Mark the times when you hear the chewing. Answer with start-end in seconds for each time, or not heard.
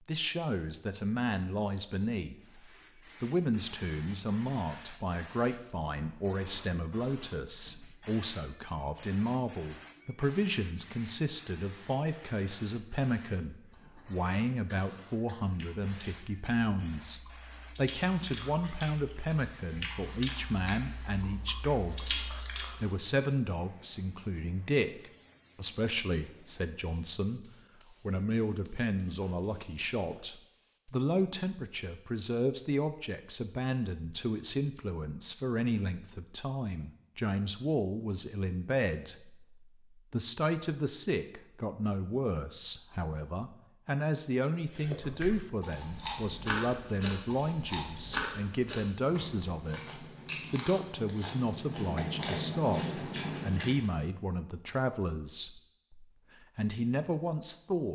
13.7-22.9, 44.7-54.0.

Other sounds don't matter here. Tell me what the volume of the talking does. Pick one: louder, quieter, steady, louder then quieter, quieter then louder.
steady.